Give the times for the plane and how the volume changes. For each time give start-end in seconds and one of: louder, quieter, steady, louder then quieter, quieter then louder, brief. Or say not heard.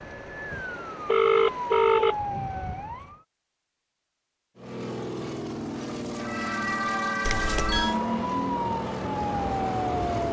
4.5-10.2 steady.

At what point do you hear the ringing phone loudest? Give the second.
1 s.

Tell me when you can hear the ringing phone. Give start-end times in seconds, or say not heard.
0.5-2.1, 7.2-8.0.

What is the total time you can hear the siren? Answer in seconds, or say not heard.
7 s.